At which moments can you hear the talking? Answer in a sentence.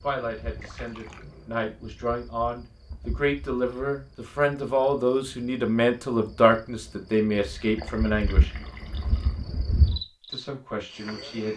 You can hear the talking from 0.0 to 8.5 s and from 10.2 to 11.5 s.